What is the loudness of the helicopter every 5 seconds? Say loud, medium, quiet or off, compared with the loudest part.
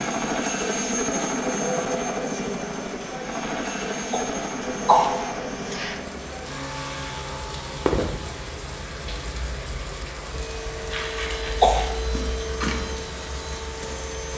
loud, medium, medium.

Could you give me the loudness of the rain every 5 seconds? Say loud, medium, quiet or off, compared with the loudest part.
medium, loud, loud.